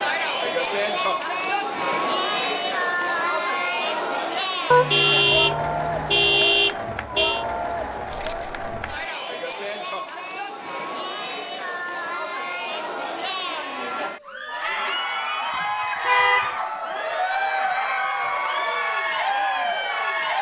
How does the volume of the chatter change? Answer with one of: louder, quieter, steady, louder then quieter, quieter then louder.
quieter then louder.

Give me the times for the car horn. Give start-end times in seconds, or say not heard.
4.7-7.5, 16.1-16.6.